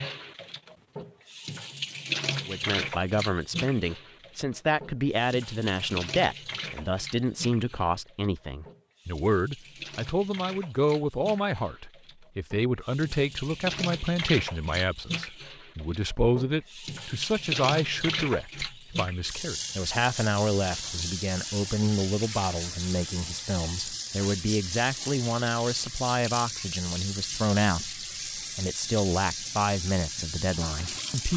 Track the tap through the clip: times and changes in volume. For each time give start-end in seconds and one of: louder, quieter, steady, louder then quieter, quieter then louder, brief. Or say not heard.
0.0-31.3 quieter then louder.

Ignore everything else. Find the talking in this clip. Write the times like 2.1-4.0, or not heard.
2.5-31.3.